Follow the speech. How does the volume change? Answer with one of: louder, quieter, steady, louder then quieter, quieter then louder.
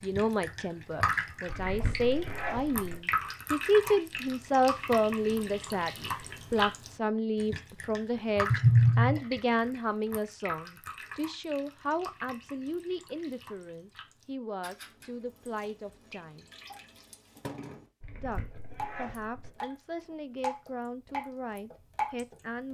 quieter.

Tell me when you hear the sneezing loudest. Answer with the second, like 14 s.
9 s.